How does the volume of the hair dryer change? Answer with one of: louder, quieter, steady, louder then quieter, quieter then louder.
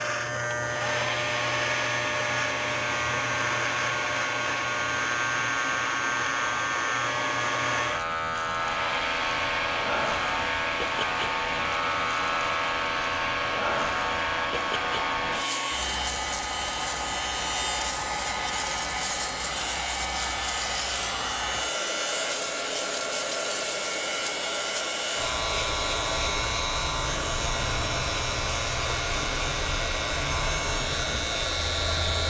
steady.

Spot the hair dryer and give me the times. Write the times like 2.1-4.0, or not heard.
0.0-32.2.